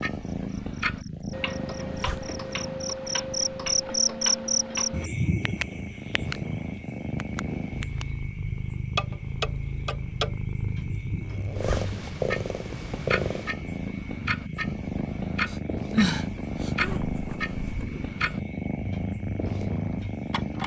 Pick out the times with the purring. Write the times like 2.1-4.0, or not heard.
0.0-20.6.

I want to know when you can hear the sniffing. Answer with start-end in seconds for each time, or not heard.
15.5-16.7.